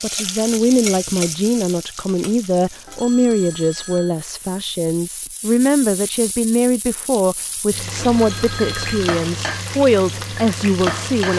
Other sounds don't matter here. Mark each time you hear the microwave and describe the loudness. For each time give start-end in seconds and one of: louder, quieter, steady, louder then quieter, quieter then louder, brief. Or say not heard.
not heard.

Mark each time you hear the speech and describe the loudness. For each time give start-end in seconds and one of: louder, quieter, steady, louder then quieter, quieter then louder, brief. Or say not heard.
0.0-11.3 steady.